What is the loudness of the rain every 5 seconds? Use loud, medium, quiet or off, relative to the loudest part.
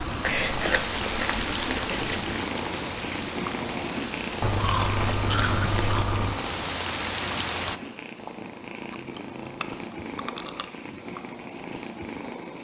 loud, loud, off.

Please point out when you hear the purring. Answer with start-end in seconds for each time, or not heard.
0.0-12.5.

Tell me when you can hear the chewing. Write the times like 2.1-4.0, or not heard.
0.2-2.4, 4.4-6.4, 8.8-10.7.